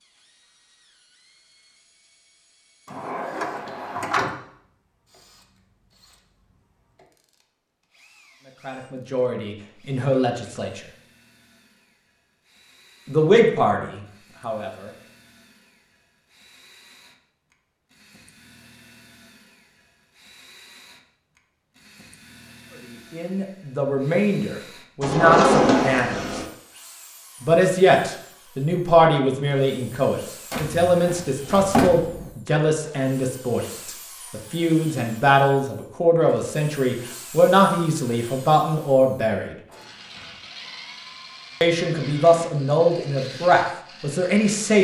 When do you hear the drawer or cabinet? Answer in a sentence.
The drawer or cabinet can be heard from 2.9 to 4.3 s, from 25.0 to 26.4 s and from 30.5 to 32.3 s.